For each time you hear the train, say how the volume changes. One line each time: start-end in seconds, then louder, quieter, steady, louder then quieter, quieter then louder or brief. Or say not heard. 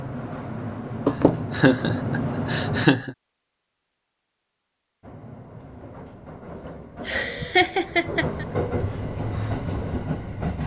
0.0-2.9 brief
5.0-10.6 louder.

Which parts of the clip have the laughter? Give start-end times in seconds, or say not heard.
1.1-3.1, 6.7-8.4.